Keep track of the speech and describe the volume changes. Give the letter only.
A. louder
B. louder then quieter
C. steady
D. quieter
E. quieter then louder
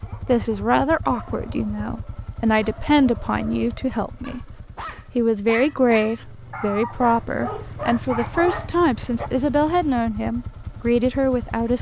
C.